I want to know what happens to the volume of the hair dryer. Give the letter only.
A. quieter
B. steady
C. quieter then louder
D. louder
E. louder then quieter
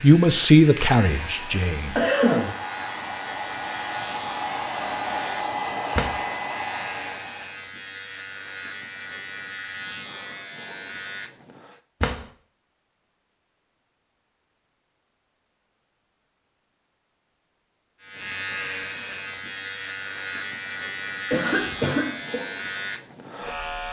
D.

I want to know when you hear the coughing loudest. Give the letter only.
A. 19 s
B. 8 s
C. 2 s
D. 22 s
C.